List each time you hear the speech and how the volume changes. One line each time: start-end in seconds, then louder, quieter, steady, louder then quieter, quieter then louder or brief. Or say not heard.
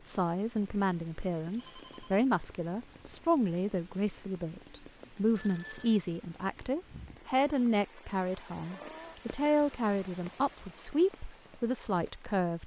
0.1-12.6 steady.